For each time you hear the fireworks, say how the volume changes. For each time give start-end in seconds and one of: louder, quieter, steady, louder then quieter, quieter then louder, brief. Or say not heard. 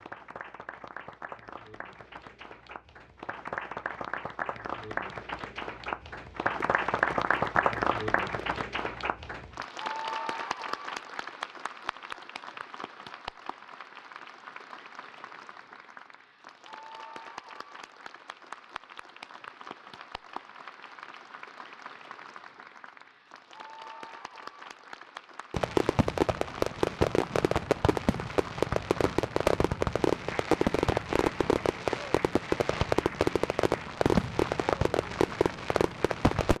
6.5-8.7 brief
25.5-36.5 steady.